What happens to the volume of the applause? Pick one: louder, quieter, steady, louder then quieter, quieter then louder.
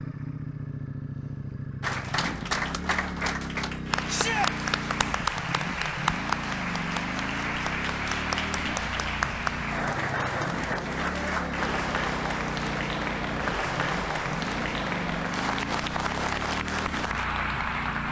steady.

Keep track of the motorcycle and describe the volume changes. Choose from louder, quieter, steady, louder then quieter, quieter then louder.
steady.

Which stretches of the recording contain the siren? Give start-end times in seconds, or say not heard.
not heard.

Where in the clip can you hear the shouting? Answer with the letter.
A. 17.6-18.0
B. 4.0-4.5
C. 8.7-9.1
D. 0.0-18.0
B.